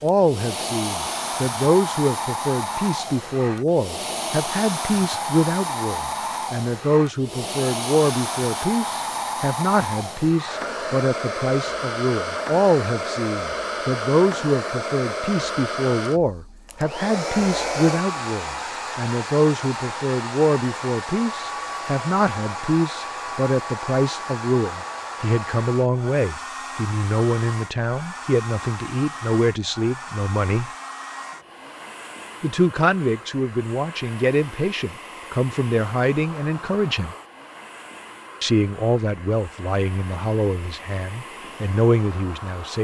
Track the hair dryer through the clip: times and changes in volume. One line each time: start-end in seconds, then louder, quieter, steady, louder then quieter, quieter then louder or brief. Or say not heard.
0.0-42.7 quieter.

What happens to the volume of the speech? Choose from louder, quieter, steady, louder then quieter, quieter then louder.
steady.